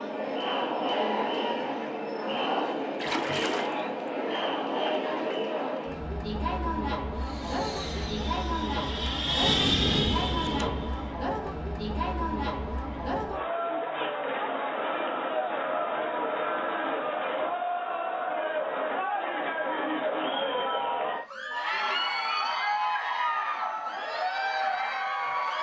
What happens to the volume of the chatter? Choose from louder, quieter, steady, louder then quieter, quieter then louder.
steady.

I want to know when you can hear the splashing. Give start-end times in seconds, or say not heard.
3.0-3.8.